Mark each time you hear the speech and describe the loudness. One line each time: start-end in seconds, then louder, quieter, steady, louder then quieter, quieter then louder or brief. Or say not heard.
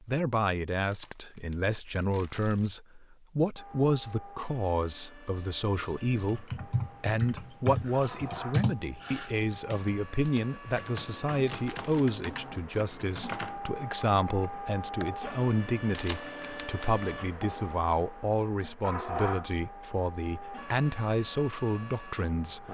0.1-22.7 steady.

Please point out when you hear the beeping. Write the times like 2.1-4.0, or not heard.
not heard.